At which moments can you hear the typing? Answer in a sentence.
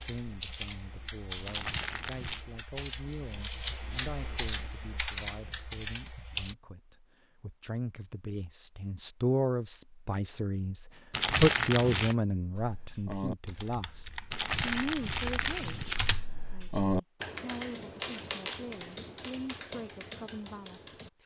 You can hear the typing from 0.0 to 6.5 s and from 12.6 to 21.1 s.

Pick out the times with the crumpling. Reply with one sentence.
You can hear the crumpling from 1.4 to 2.5 s, from 11.1 to 12.2 s and from 14.3 to 16.1 s.